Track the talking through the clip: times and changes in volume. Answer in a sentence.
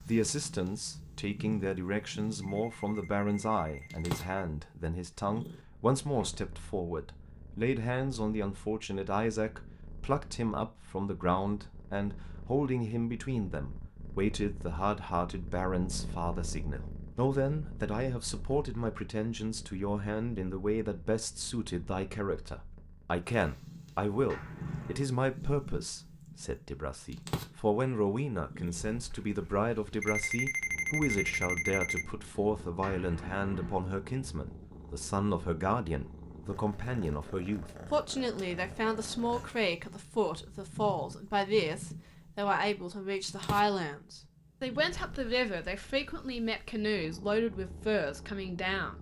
You can hear the talking from 0.0 to 48.9 s, at a steady volume.